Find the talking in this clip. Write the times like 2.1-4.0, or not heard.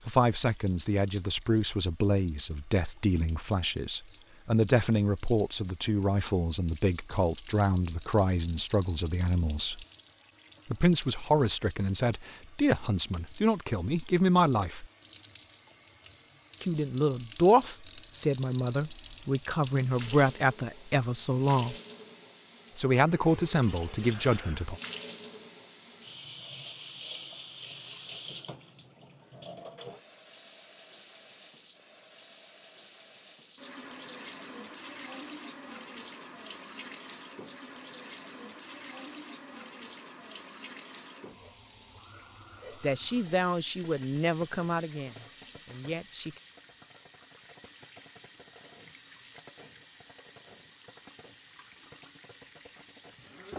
0.1-9.8, 10.7-14.8, 16.6-21.8, 22.8-24.8, 42.8-46.4.